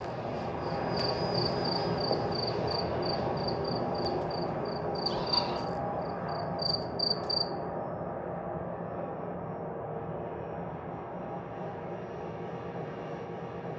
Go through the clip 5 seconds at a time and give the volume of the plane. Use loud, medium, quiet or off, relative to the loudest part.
loud, loud, medium.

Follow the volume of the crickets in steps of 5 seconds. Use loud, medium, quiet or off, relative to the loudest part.
medium, loud, off.